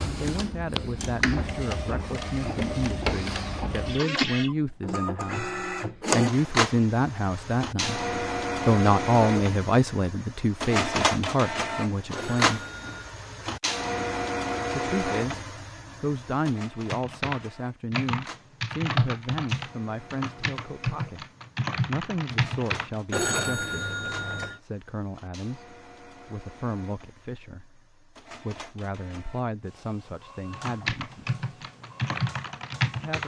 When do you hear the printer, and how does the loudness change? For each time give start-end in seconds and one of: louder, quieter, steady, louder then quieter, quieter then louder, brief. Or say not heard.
0.0-33.2 quieter.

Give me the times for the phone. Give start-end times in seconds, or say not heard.
12.2-13.2, 23.1-24.6.